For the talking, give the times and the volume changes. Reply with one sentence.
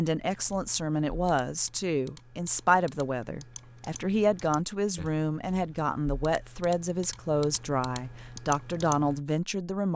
The talking can be heard from 0.0 to 9.9 s, at a steady volume.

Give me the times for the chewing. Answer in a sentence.
The chewing can't be heard in this clip.